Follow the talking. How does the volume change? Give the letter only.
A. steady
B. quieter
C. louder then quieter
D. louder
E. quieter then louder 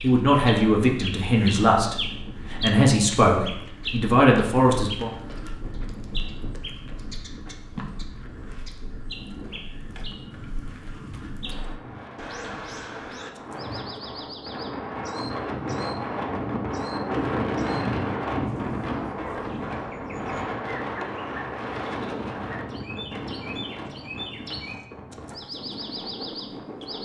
A.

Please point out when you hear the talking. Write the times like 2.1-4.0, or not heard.
0.0-5.1.